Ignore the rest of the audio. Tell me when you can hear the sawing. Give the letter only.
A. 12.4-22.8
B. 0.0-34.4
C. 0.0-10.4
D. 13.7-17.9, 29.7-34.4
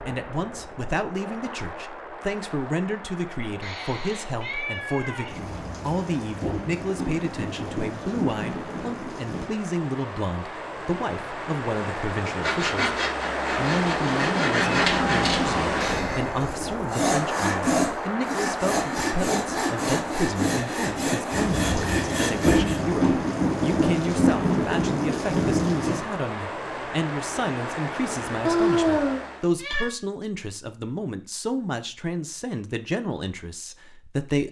A.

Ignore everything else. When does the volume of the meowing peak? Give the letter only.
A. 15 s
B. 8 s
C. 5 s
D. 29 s
D.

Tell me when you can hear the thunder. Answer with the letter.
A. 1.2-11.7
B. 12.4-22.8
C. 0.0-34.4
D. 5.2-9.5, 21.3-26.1
D.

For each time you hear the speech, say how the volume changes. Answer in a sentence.
You can hear the speech from 0.0 to 34.4 s, at a steady volume.